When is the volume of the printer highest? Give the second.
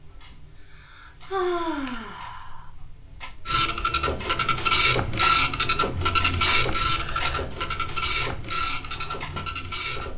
5 s.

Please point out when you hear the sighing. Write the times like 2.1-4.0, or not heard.
0.3-2.6, 6.5-7.5.